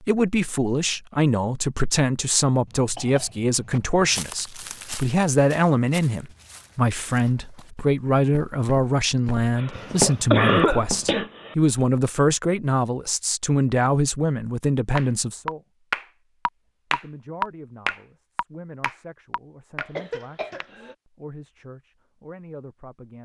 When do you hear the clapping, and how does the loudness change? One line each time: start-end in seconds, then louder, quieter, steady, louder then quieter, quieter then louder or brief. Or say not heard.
14.9-19.9 quieter.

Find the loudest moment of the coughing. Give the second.
10 s.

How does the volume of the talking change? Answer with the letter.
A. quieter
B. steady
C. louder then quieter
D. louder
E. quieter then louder
A.